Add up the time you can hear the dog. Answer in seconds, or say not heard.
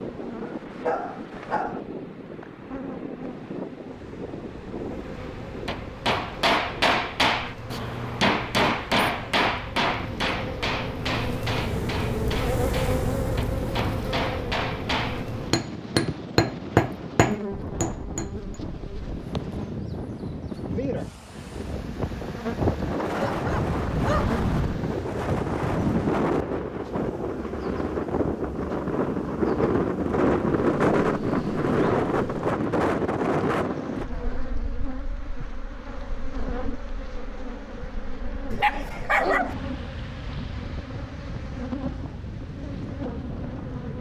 4 s.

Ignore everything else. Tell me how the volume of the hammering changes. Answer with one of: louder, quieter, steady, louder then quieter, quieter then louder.
quieter then louder.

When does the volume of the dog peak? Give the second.
39 s.